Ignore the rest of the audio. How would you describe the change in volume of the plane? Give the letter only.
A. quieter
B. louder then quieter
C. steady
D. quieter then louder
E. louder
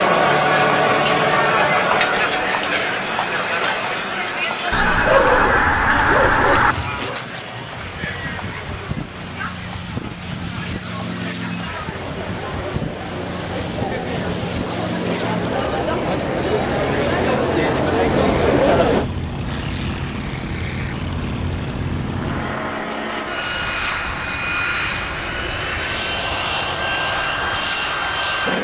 E.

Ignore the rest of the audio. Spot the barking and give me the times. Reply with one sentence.
The barking can be heard from 5.0 to 7.2 s.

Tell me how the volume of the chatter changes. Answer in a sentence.
The loudness of the chatter goes down, then up.